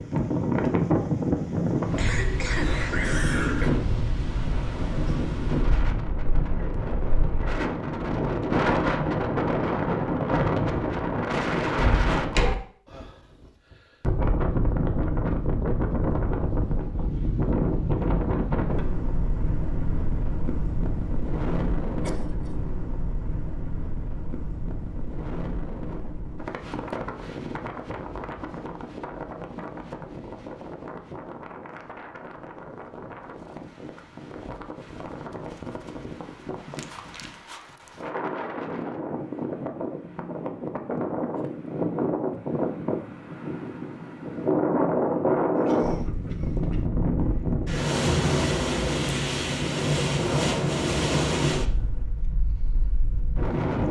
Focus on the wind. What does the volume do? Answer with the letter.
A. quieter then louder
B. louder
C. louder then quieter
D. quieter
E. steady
A.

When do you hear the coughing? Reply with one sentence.
You can hear the coughing from 1.9 to 3.7 s, from 22.0 to 22.6 s and from 45.5 to 46.9 s.